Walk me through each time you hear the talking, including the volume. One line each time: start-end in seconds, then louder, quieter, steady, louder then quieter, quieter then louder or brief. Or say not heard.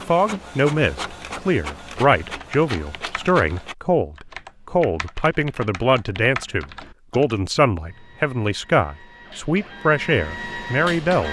0.1-11.2 steady.